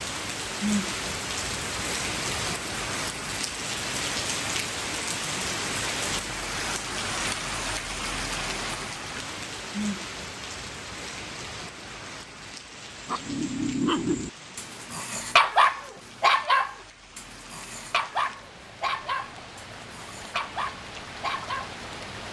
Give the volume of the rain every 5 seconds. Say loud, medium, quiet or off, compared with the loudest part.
loud, loud, medium, quiet, medium.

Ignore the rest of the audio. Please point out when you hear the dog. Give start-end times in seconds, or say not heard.
13.1-21.7.